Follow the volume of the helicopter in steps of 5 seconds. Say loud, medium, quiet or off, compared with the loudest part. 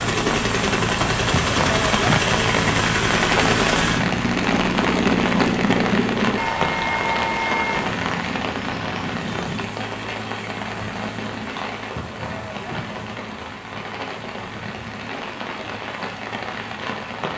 loud, loud, quiet, quiet.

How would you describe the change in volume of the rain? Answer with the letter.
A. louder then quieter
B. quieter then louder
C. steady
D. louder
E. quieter
E.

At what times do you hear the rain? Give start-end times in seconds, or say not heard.
0.0-17.3.